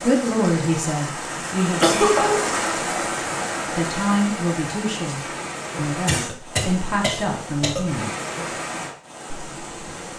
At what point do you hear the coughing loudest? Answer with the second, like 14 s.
2 s.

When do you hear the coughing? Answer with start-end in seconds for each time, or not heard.
1.8-2.5, 6.0-7.8.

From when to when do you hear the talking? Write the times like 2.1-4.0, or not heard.
0.0-2.0, 3.8-8.1.